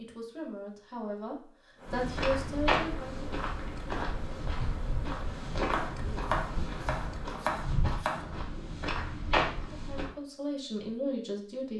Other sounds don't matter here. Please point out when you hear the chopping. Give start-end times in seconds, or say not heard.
5.7-8.2.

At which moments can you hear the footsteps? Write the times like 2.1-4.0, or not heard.
1.9-10.1.